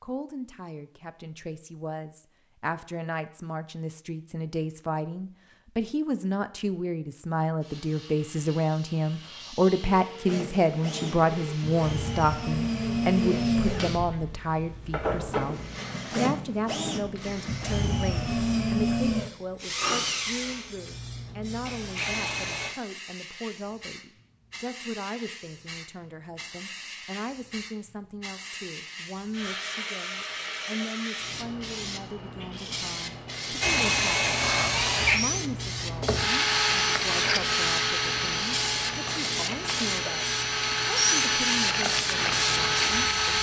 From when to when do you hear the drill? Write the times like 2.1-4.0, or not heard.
10.2-22.7, 33.6-43.3.